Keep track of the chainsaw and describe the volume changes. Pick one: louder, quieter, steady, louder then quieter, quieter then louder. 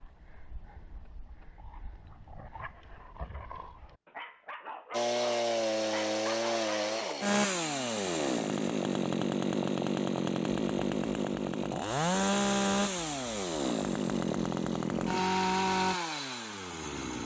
steady.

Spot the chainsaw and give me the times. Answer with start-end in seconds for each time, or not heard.
4.9-17.2.